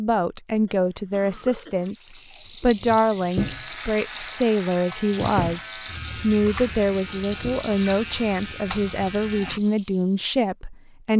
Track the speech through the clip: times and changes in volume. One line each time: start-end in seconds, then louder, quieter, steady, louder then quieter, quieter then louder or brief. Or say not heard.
0.0-11.1 steady.